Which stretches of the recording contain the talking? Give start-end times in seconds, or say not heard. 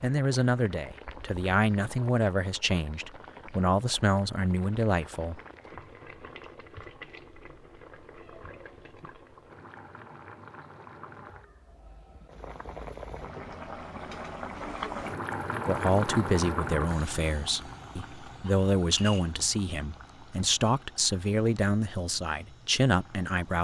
0.0-5.4, 15.7-23.5.